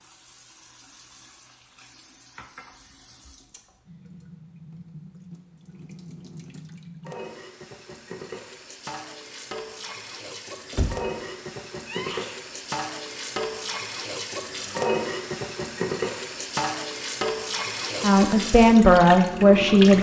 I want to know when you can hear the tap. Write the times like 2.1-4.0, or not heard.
0.0-19.9.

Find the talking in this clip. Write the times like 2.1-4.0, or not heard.
18.0-19.9.